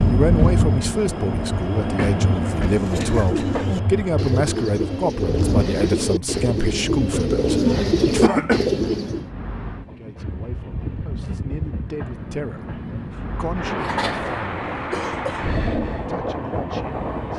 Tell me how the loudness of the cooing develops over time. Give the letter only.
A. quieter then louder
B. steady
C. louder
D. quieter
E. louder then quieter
C.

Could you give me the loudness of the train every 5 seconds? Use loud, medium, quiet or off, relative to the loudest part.
loud, medium, medium, loud.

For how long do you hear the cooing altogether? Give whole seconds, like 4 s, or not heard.
7 s.